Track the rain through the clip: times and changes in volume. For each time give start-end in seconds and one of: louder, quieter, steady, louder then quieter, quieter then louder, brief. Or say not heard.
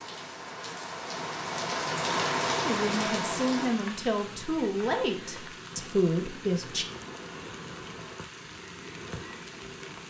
0.0-10.0 quieter.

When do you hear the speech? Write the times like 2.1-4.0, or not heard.
2.6-6.8.